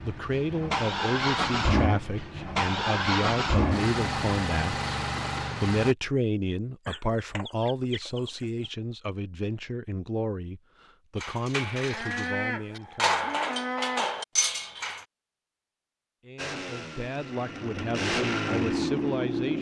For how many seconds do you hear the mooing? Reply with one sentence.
You can hear the mooing for 4 seconds altogether.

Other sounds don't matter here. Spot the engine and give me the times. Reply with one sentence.
The engine can be heard from 0.0 to 6.0 s and from 16.4 to 19.5 s.